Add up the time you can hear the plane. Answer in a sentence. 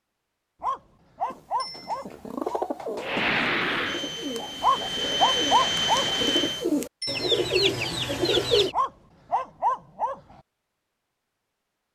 You can hear the plane for 4 seconds altogether.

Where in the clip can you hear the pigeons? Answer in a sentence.
The pigeons can be heard from 1.2 to 8.7 s.